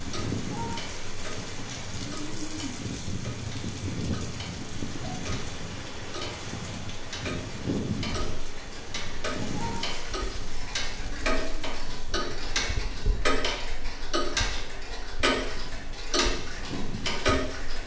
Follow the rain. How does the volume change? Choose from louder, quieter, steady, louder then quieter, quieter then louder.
quieter.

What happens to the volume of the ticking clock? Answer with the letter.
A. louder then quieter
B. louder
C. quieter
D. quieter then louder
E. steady
B.